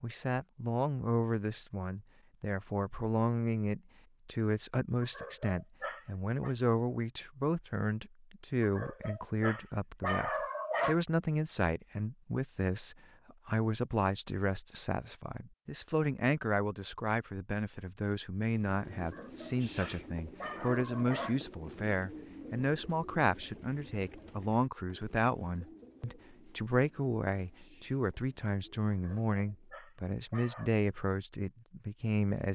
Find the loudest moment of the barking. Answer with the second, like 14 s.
11 s.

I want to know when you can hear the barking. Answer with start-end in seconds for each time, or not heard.
5.0-6.5, 8.6-11.0, 18.9-21.4, 28.9-30.7.